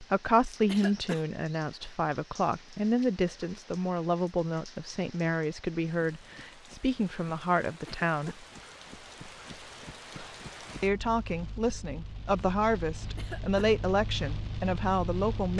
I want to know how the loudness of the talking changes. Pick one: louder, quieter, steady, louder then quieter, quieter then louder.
steady.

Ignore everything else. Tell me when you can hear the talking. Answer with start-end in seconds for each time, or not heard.
0.0-8.4, 10.8-15.5.